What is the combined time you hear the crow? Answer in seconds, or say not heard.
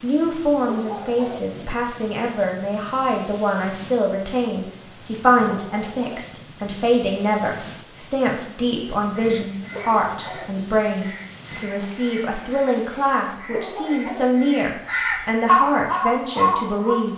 8 s.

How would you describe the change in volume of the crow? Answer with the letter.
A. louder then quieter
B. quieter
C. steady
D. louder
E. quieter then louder
D.